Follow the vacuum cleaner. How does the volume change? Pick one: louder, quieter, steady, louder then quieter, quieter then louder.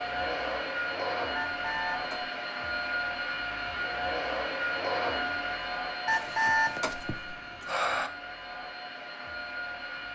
quieter.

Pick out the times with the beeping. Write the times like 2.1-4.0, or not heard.
1.4-2.3, 6.0-8.1.